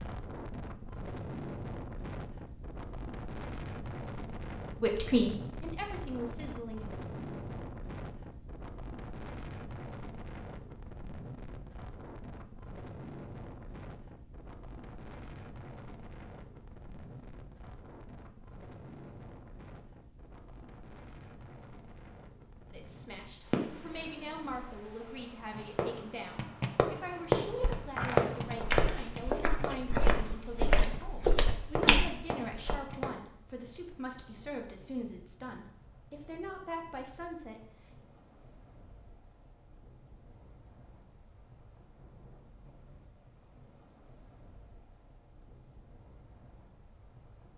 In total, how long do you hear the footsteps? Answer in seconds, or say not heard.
5 s.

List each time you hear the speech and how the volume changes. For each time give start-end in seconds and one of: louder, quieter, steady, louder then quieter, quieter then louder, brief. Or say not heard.
4.8-6.9 brief
22.7-37.7 steady.